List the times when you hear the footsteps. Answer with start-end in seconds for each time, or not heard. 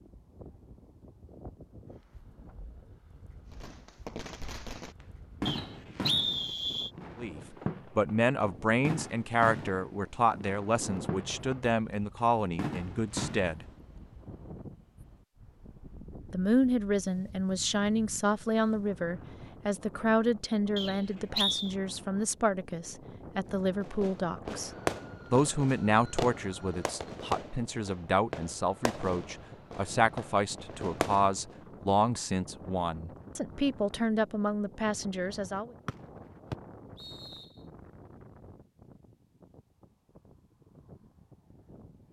not heard.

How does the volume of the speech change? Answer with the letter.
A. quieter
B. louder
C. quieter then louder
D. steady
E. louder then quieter
D.